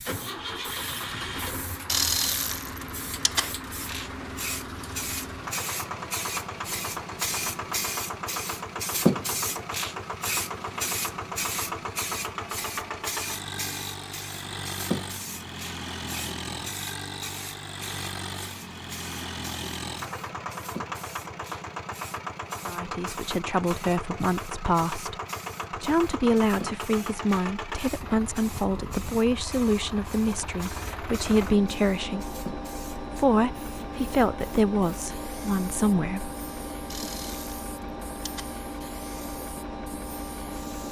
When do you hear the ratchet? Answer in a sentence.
You can hear the ratchet from 1.9 to 3.5 s and from 36.9 to 38.5 s.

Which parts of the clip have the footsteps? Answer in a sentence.
You can't hear the footsteps here.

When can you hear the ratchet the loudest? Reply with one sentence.
The volume of the ratchet peaks at 2 seconds.